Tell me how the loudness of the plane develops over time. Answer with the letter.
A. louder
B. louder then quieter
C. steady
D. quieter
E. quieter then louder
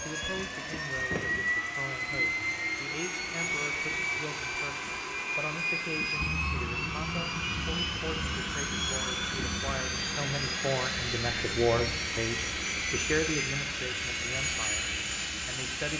C.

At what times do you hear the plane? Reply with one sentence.
The plane can be heard from 0.0 to 15.9 s.